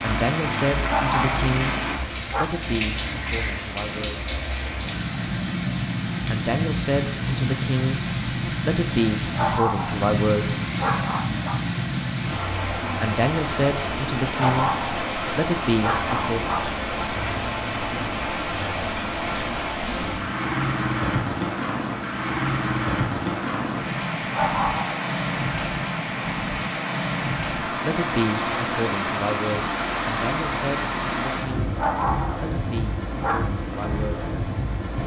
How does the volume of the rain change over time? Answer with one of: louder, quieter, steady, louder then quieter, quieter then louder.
steady.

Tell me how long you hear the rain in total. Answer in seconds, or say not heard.
35 s.